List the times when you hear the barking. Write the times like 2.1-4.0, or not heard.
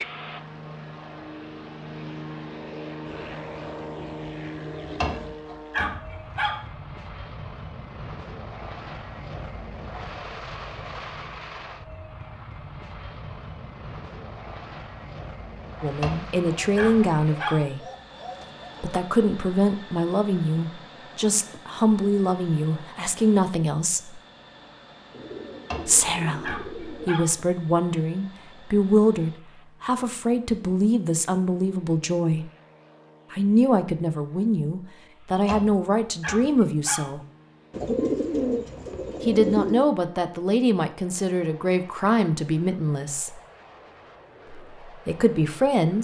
5.0-6.6, 16.0-17.6, 25.7-27.3, 35.5-37.0.